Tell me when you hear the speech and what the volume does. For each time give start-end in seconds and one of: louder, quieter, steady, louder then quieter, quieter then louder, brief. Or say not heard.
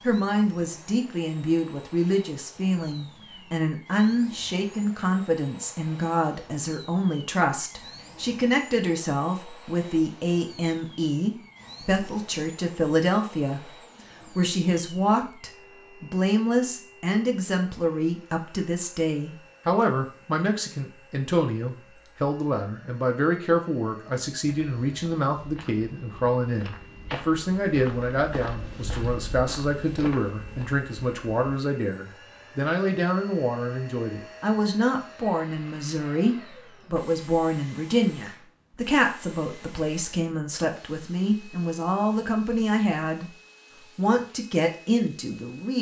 0.0-43.4 steady
44.0-45.7 brief.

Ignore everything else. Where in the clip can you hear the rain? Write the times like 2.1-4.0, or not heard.
not heard.